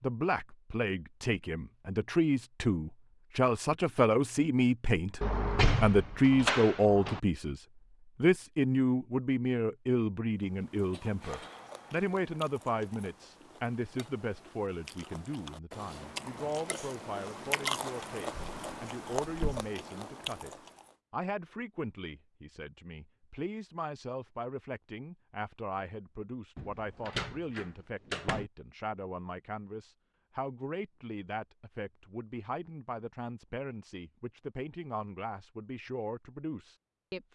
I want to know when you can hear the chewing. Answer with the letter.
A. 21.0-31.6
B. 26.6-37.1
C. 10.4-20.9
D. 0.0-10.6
C.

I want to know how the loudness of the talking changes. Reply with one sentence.
The volume of the talking goes down.